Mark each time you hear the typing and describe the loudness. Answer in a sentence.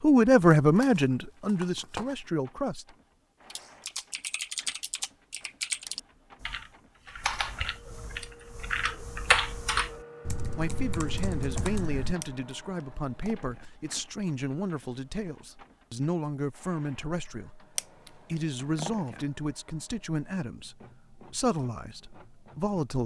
You can hear the typing from 3.5 to 12.2 s, getting louder then quieter.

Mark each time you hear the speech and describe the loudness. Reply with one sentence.
You can hear the speech briefly from 0.0 to 3.0 s; and from 10.6 to 23.0 s, at a steady volume.